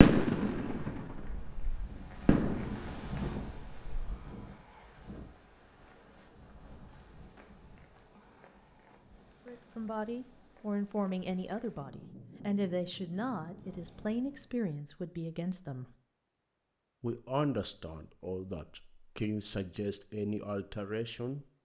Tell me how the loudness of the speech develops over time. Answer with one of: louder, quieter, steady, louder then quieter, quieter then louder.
steady.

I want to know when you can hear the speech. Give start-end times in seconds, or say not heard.
9.4-15.9, 17.0-21.4.